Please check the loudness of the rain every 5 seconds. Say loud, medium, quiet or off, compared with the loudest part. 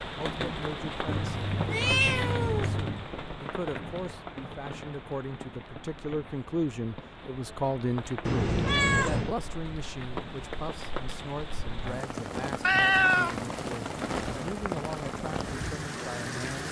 loud, medium, loud, loud.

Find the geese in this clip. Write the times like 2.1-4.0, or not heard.
not heard.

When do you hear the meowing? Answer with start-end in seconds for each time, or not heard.
1.1-3.0, 8.2-9.3, 12.6-13.3.